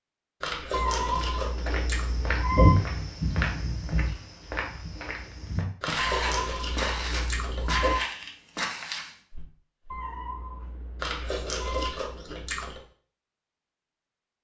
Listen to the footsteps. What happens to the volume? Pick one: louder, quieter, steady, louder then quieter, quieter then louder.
quieter.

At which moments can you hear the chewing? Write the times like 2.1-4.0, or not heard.
0.4-2.0, 5.8-7.8, 10.9-12.8.